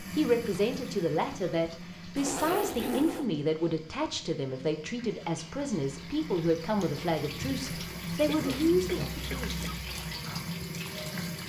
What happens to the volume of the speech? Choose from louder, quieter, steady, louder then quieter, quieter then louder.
steady.